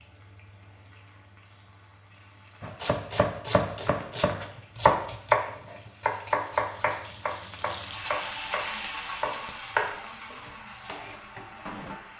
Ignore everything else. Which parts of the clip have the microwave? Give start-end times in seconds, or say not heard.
not heard.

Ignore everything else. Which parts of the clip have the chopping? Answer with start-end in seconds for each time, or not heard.
2.6-11.9.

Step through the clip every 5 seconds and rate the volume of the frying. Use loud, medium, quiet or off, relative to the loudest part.
quiet, loud, medium.